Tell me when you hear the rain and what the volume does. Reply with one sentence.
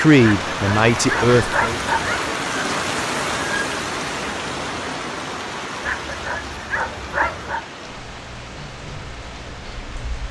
You can hear the rain from 0.0 to 10.2 s, getting quieter.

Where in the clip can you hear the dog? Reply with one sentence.
The dog can be heard from 0.2 to 2.3 s and from 5.8 to 7.7 s.